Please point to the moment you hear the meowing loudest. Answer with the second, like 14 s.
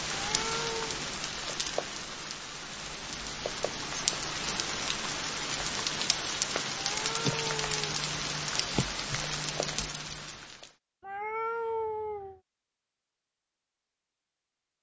12 s.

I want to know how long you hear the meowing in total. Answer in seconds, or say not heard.
3 s.